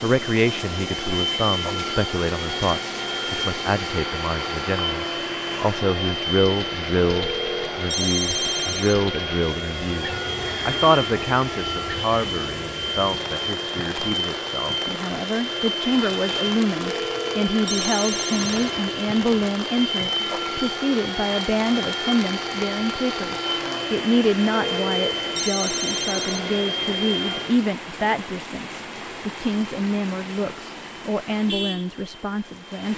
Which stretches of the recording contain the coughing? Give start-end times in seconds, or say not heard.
not heard.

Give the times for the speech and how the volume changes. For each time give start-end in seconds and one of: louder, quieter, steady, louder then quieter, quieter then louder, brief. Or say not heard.
0.0-32.9 steady.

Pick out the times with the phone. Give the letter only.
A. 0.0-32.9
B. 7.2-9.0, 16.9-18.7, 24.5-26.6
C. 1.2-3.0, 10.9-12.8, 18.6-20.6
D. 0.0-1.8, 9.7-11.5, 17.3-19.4
B.